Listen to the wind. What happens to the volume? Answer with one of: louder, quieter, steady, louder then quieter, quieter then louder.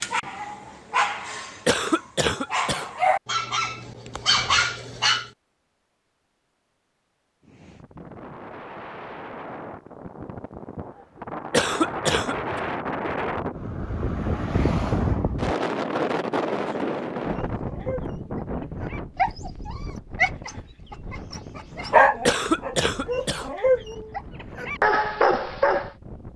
louder then quieter.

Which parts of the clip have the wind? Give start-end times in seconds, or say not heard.
7.4-26.3.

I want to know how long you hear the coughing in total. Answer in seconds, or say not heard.
3 s.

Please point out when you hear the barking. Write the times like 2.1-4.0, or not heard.
0.0-5.2, 17.3-25.9.